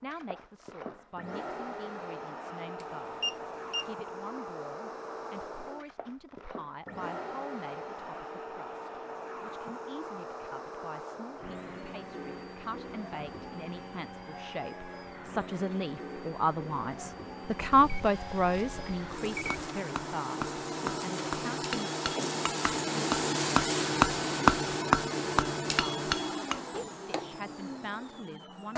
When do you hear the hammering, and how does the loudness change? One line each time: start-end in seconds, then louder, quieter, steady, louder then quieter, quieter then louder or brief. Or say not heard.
19.4-27.4 louder then quieter.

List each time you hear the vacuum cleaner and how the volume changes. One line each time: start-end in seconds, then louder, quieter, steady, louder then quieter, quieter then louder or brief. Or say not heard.
0.0-28.7 louder.